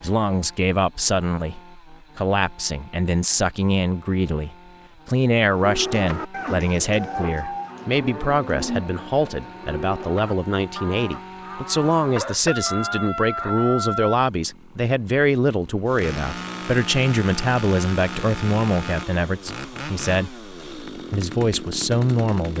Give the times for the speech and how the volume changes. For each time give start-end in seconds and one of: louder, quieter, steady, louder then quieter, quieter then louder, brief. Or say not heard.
0.0-22.5 steady.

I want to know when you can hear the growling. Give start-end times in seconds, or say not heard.
not heard.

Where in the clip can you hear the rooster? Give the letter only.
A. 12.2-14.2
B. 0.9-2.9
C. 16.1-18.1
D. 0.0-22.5
A.